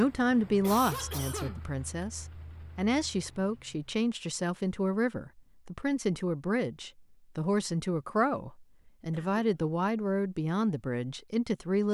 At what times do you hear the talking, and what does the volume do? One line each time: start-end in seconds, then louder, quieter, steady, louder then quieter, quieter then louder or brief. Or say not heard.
0.0-11.8 steady.